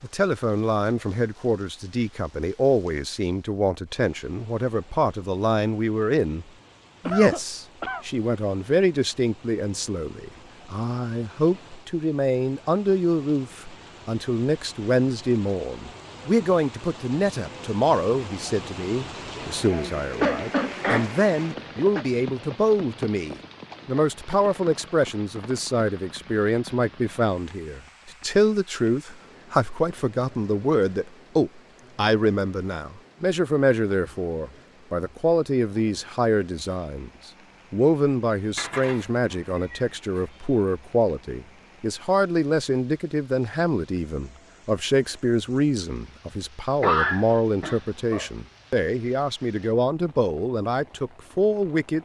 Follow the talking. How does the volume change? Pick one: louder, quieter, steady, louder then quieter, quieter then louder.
steady.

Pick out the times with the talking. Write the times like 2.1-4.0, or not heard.
0.0-6.5, 7.0-52.0.